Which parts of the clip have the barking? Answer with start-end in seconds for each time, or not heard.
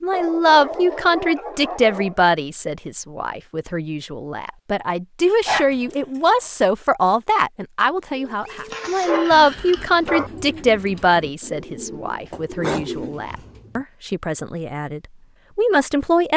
0.1-2.2, 5.5-6.5, 8.7-10.3, 12.3-13.8.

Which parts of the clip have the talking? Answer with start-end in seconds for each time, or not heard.
0.0-16.3.